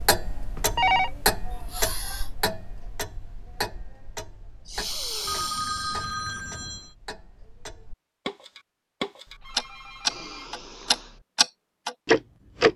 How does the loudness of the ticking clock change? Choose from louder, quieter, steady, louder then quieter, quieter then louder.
quieter then louder.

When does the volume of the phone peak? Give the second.
1 s.